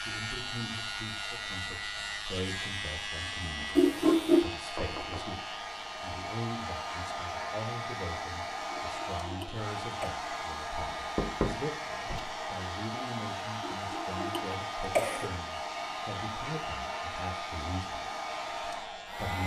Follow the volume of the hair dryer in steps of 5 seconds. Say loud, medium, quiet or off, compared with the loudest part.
medium, loud, loud, loud.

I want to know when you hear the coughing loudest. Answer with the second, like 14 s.
4 s.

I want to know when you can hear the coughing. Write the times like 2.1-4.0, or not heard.
3.8-4.5, 8.7-10.1, 13.6-15.3.